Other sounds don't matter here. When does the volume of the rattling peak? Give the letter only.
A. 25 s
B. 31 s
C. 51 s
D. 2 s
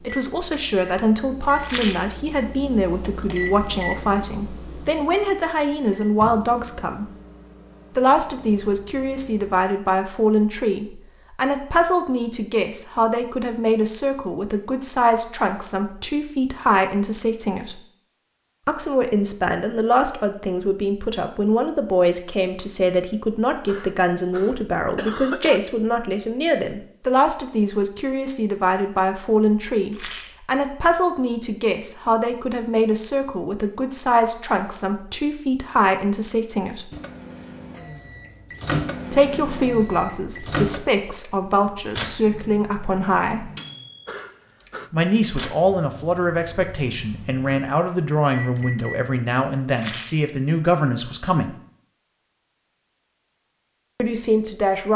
D.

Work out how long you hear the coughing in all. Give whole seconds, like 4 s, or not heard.
3 s.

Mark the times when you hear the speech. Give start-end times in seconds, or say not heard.
0.0-7.0, 8.0-17.8, 18.6-36.9, 39.1-43.5, 44.9-51.5, 54.0-54.9.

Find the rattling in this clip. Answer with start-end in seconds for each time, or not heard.
1.6-2.1, 29.9-30.4, 49.8-50.2.